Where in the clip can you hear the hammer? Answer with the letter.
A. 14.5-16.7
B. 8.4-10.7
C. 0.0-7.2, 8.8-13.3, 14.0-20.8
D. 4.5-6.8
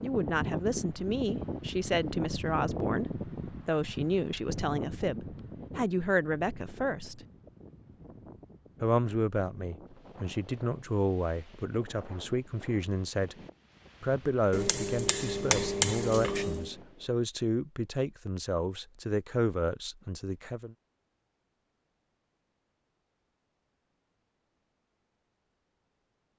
A.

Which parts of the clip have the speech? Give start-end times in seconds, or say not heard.
0.0-7.2, 8.8-13.3, 14.0-20.8.